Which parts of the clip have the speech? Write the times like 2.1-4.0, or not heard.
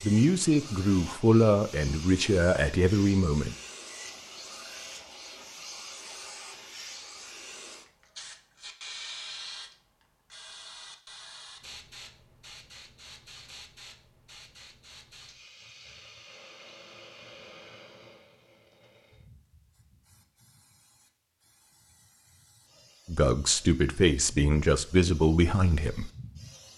0.0-3.5, 23.1-26.1.